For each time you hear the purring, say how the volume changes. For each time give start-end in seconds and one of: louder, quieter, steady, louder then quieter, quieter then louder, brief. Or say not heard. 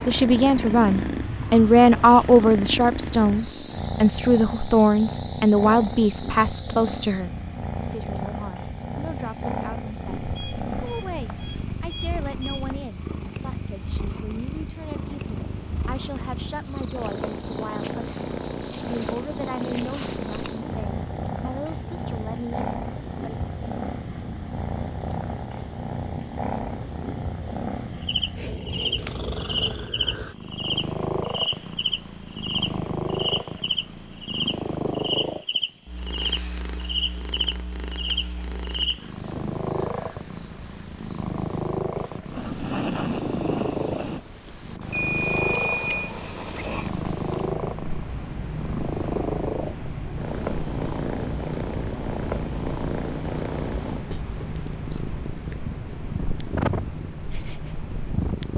0.0-58.5 steady.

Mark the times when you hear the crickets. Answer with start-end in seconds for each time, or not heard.
0.0-58.5.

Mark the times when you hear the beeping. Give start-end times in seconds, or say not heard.
10.2-12.8, 44.9-46.1.